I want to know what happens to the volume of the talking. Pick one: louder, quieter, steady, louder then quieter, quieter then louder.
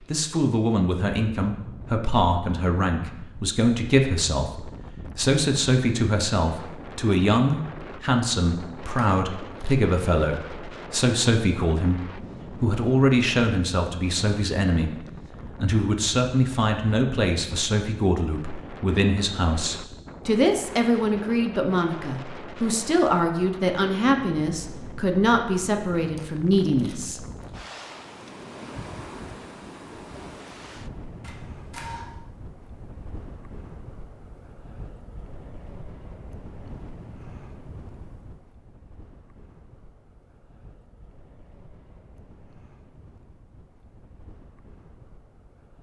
steady.